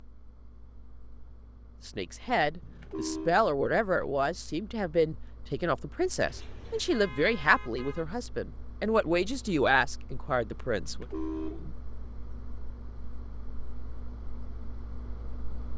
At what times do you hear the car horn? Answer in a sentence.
You can hear the car horn from 2.6 to 3.4 s, from 6.2 to 8.1 s and from 10.8 to 11.8 s.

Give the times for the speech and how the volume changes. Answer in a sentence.
You can hear the speech from 1.9 to 11.1 s, at a steady volume.